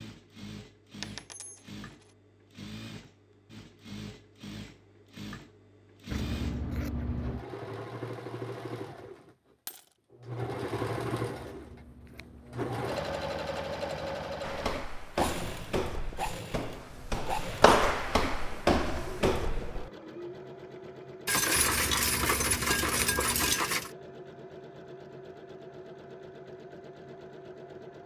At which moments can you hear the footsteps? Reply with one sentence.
The footsteps can be heard from 14.4 to 19.9 s.